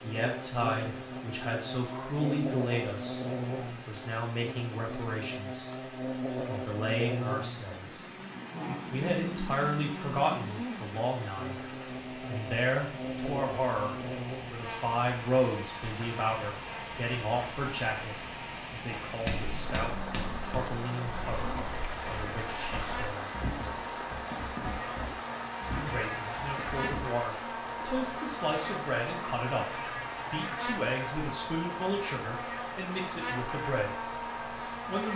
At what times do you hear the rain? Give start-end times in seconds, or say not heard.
0.0-35.1.